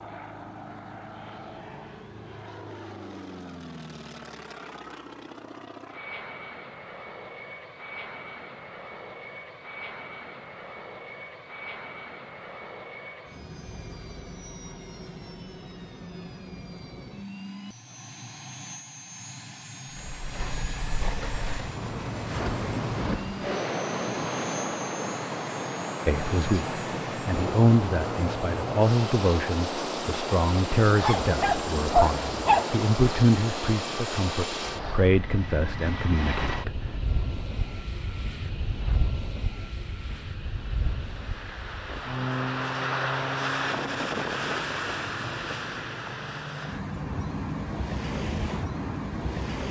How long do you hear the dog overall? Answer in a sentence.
You can hear the dog for 2 seconds altogether.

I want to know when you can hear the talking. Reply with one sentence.
The talking can be heard from 26.1 to 36.9 s.